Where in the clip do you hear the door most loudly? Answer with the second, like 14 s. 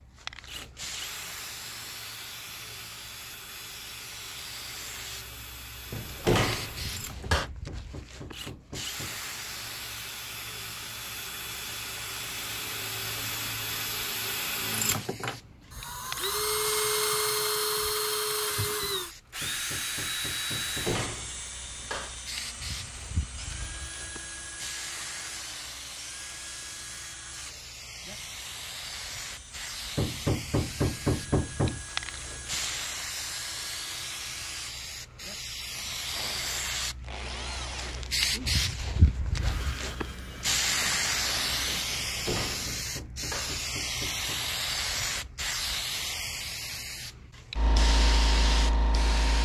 6 s.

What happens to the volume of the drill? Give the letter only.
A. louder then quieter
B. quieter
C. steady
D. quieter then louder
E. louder
A.